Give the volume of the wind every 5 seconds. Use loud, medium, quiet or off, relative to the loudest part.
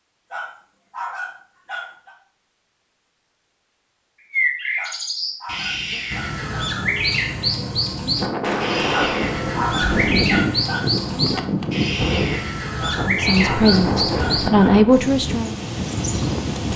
off, loud, loud, loud.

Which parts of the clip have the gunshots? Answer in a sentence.
You can hear the gunshots from 8.4 to 10.3 s.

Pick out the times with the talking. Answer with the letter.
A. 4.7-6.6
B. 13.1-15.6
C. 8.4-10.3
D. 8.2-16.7
B.